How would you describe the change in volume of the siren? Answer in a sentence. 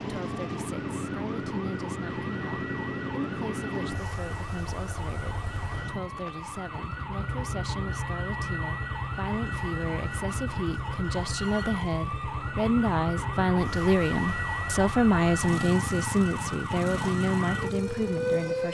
The loudness of the siren goes up.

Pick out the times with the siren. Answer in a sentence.
The siren can be heard from 0.1 to 18.6 s.